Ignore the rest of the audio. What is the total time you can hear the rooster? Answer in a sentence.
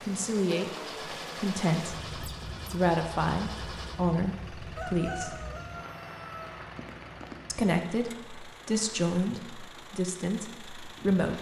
You can hear the rooster for 2 seconds altogether.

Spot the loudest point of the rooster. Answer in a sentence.
The volume of the rooster peaks at 5 seconds.